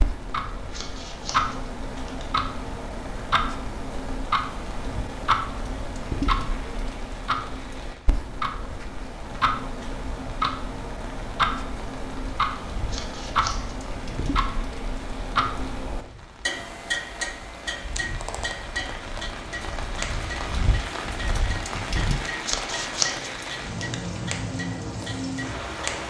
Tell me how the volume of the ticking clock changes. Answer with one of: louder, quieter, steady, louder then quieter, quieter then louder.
quieter.